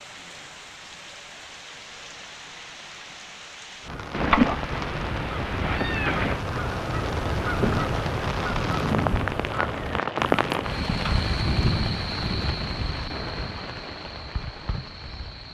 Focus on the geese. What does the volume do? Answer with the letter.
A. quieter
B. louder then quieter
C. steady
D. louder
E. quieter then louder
B.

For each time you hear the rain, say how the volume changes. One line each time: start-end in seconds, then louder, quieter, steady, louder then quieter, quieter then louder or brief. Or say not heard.
0.0-15.5 louder then quieter.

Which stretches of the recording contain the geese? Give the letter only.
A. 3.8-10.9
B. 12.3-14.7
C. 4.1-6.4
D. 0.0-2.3
A.